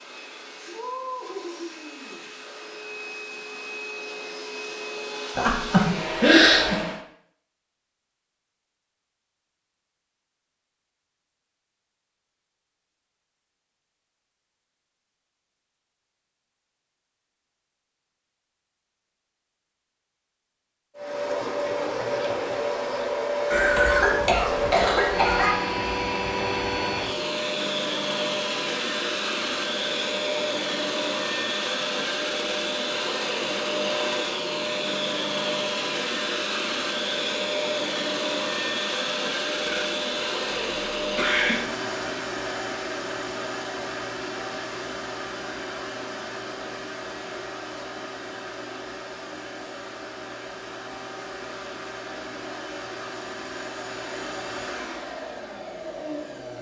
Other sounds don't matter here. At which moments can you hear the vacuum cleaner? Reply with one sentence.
You can hear the vacuum cleaner from 0.0 to 7.0 s and from 20.9 to 56.5 s.